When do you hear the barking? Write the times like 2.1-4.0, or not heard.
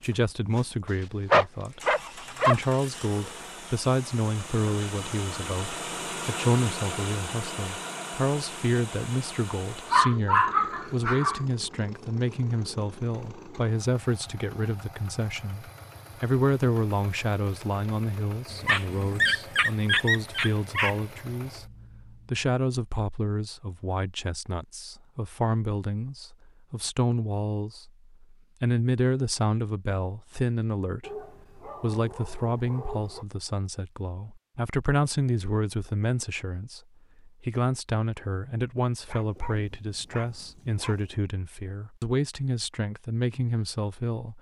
1.3-2.5, 9.9-11.4, 18.5-20.9, 31.0-33.2, 39.0-41.1.